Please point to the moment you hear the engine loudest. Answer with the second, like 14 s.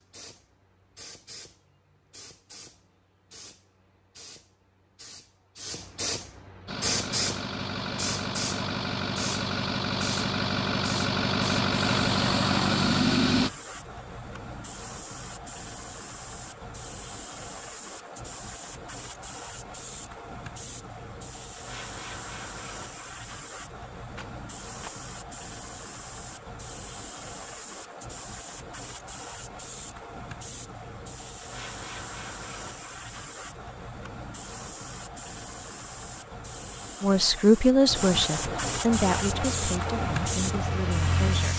13 s.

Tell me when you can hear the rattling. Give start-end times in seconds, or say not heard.
24.1-25.0.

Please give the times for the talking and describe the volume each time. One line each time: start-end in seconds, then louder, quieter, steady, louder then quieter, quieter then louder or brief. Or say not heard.
37.0-41.5 quieter.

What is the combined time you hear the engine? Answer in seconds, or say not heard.
9 s.